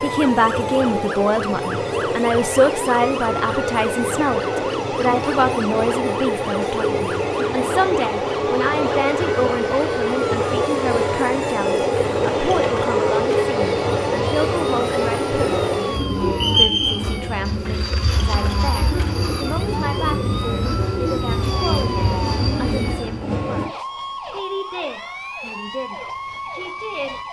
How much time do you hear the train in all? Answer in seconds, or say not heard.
24 s.